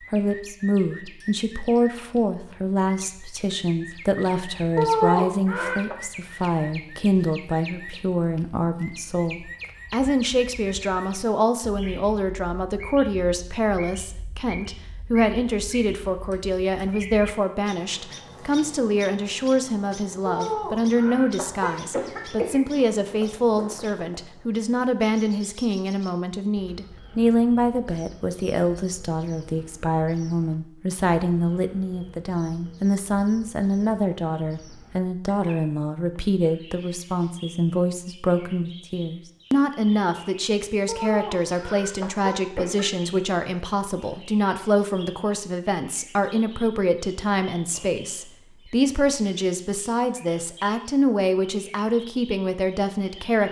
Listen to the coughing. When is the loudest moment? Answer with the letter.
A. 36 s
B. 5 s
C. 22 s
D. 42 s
B.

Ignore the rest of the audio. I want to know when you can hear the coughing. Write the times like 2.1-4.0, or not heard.
4.8-6.0, 20.2-22.6, 40.9-42.9.